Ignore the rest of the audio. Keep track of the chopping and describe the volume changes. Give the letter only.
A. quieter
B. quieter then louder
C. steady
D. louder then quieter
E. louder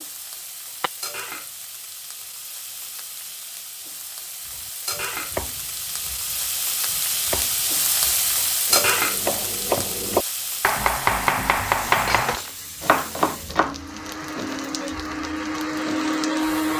E.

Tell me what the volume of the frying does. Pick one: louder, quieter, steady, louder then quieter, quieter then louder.
louder then quieter.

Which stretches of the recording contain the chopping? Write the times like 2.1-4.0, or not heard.
4.5-13.8.